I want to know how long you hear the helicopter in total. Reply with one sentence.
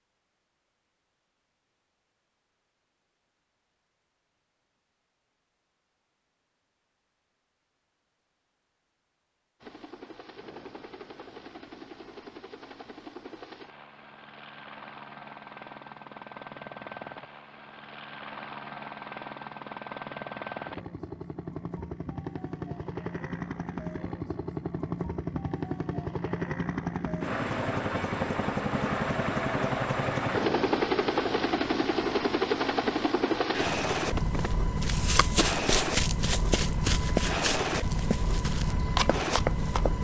You can hear the helicopter for 30 seconds altogether.